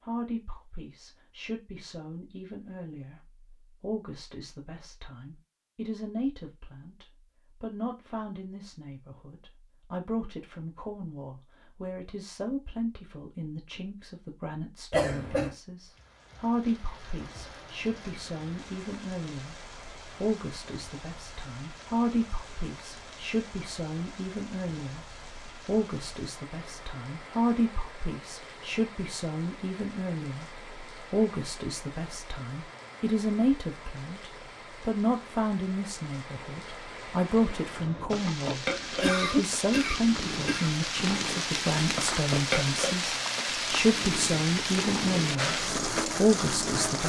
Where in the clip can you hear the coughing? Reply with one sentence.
You can hear the coughing from 14.9 to 15.6 s and from 38.9 to 40.8 s.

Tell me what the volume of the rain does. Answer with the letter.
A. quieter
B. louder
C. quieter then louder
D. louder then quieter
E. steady
B.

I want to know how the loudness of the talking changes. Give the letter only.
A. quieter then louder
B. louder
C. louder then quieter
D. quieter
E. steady
B.